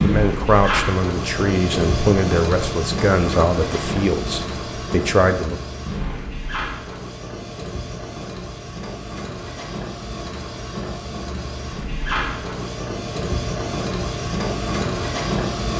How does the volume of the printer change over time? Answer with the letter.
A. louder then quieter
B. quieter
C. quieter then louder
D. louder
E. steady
C.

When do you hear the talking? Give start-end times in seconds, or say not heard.
0.0-5.5.